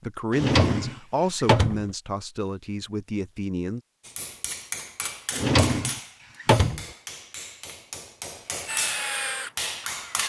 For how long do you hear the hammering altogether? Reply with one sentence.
The hammering can be heard for 6 seconds in total.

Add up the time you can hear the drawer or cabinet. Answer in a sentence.
You can hear the drawer or cabinet for 3 seconds altogether.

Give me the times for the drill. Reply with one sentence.
The drill can be heard from 8.7 to 10.2 s.